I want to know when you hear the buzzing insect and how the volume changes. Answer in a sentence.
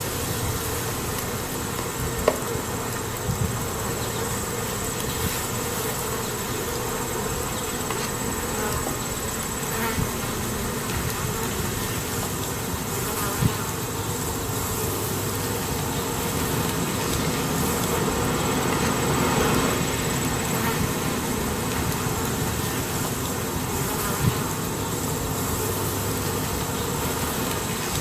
The buzzing insect can be heard from 0.0 to 27.9 s, at a steady volume.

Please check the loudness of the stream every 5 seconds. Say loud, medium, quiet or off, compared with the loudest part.
medium, medium, medium, loud, loud, medium.